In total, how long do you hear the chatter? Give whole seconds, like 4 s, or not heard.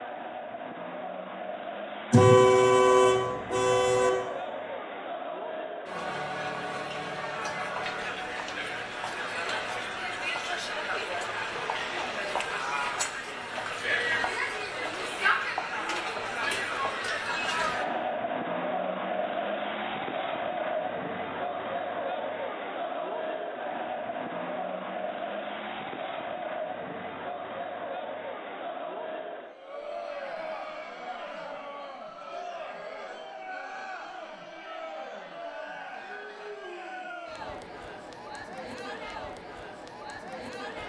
41 s.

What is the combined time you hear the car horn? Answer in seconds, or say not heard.
2 s.